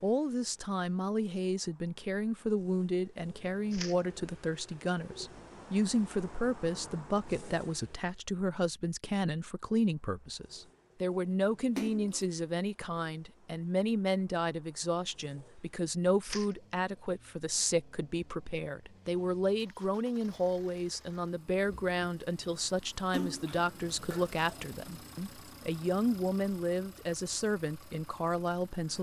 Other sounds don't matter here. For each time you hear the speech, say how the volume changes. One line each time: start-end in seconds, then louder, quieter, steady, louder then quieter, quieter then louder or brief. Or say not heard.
0.0-28.9 steady.